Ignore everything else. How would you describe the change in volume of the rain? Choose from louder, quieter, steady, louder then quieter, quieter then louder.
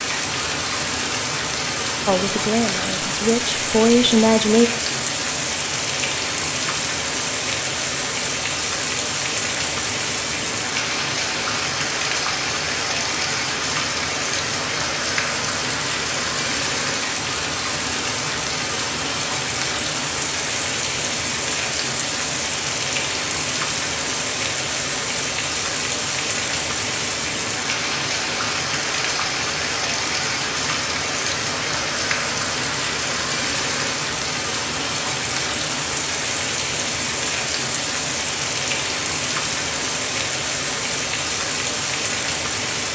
steady.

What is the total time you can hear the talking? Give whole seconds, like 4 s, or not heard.
3 s.